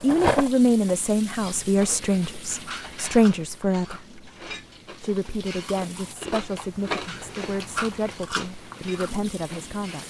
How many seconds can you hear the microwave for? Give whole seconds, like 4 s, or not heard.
not heard.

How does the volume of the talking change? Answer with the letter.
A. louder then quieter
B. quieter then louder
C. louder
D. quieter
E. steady
D.